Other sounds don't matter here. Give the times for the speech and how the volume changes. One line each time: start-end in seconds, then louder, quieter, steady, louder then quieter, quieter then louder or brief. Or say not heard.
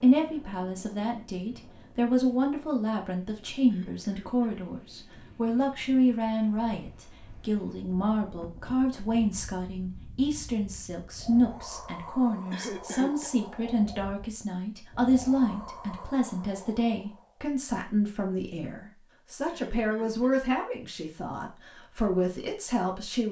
0.0-23.2 steady.